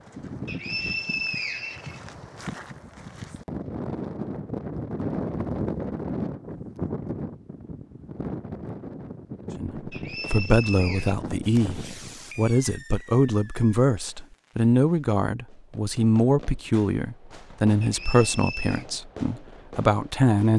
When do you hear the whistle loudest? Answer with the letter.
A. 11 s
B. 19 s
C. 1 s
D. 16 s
C.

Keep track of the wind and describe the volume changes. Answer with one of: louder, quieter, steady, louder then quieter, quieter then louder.
louder then quieter.